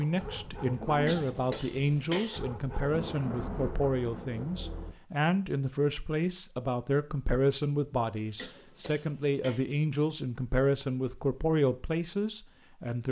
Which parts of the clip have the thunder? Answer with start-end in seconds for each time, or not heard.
2.9-5.0.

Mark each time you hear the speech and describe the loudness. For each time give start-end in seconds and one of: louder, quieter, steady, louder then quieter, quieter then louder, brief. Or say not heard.
0.0-13.0 steady.